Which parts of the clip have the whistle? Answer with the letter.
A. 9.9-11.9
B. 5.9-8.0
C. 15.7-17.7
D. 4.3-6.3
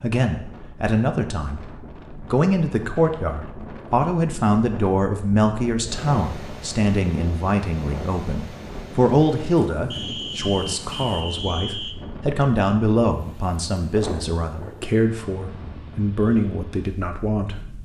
A.